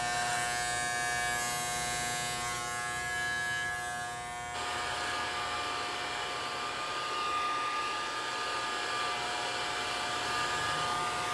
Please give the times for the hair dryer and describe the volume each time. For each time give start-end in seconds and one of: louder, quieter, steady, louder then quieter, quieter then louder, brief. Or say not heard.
4.5-11.2 steady.